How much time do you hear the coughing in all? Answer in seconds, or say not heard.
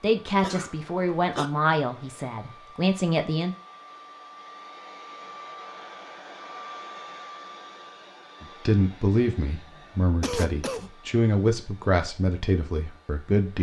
2 s.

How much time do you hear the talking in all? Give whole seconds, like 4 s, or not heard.
9 s.